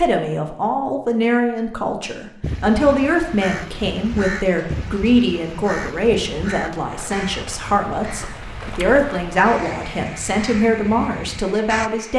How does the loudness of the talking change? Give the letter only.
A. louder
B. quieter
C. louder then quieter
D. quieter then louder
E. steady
E.